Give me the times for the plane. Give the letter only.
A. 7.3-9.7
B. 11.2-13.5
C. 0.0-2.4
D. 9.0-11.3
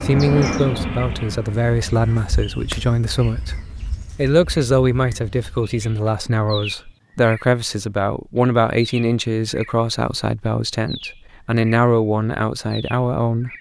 C.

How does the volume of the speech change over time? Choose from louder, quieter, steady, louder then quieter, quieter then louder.
steady.